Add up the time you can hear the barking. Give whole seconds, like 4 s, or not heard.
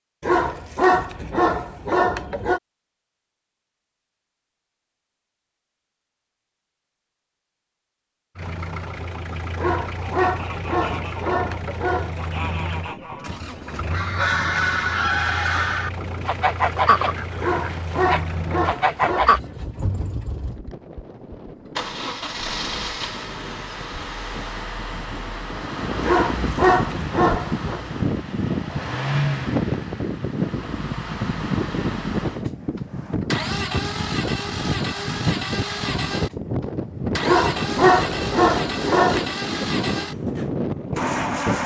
11 s.